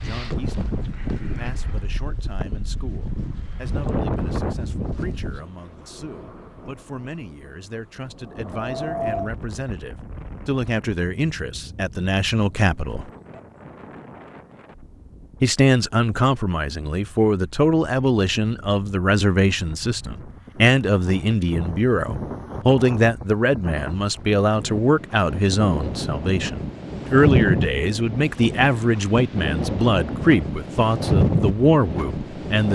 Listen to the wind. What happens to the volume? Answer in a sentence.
The volume of the wind goes down, then up.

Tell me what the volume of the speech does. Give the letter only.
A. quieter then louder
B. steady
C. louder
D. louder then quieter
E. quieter
C.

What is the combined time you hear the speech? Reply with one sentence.
The speech can be heard for 30 seconds in total.